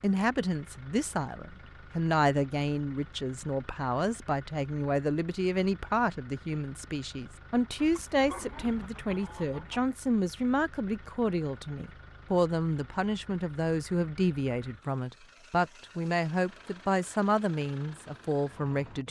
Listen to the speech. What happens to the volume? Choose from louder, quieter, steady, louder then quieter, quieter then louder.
steady.